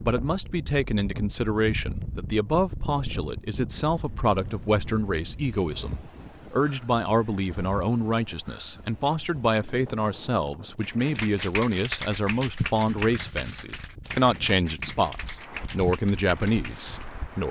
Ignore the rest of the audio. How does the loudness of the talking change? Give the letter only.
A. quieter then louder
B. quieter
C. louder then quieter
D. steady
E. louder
D.